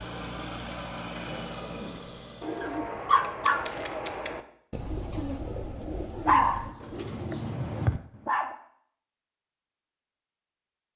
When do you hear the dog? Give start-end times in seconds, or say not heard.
2.6-3.7, 6.2-8.6.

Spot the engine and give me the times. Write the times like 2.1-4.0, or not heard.
0.0-2.7.